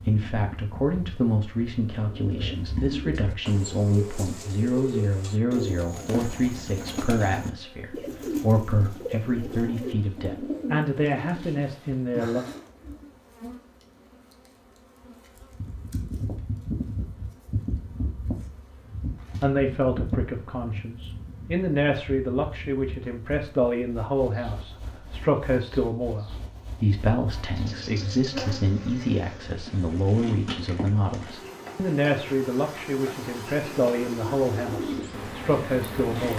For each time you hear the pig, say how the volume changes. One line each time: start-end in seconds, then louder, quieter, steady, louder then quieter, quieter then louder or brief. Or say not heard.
not heard.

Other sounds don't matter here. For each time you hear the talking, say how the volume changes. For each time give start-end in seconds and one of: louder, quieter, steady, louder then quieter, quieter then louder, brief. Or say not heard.
0.1-12.4 steady
19.4-36.3 steady.